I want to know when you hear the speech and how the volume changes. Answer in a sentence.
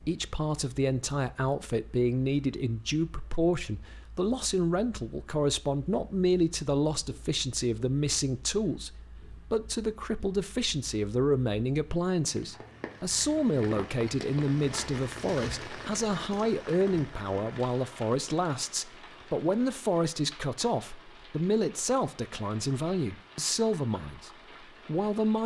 You can hear the speech from 0.1 to 25.4 s, at a steady volume.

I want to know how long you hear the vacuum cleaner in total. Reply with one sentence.
The vacuum cleaner can't be heard in this clip.